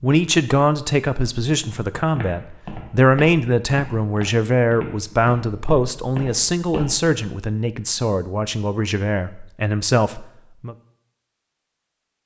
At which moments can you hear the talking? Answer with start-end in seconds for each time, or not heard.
0.0-10.8.